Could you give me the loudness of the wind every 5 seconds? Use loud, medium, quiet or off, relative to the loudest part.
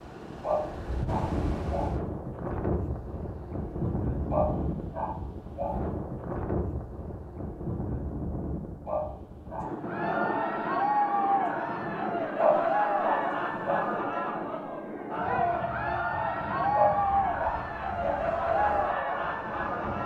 loud, loud, loud, medium.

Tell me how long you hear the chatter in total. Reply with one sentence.
The chatter can be heard for 10 seconds in total.